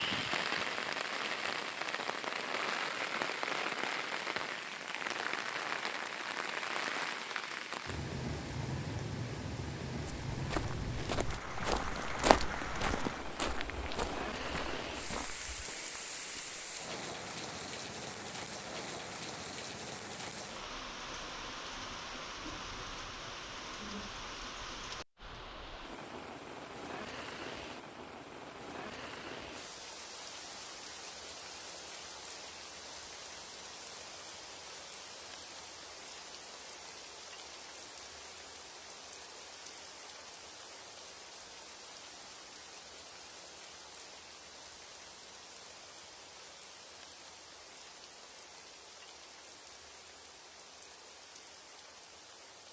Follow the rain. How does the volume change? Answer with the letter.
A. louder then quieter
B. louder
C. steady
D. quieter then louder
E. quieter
E.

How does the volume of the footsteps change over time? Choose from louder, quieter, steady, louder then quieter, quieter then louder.
louder then quieter.